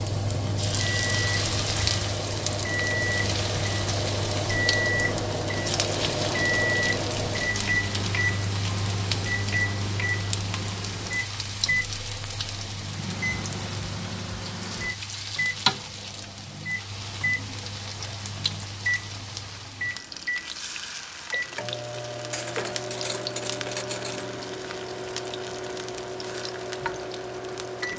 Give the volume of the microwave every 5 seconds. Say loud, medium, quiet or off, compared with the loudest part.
loud, loud, medium, medium, medium, medium.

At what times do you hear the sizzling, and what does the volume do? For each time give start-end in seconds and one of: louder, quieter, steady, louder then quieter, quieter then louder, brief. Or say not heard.
0.0-27.9 quieter.